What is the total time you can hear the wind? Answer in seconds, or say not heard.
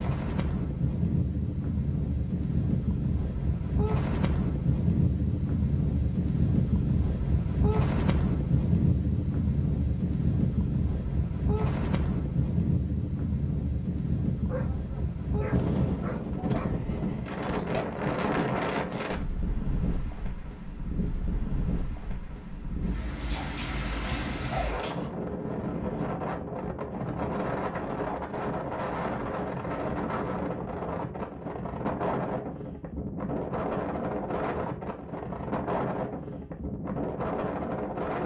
38 s.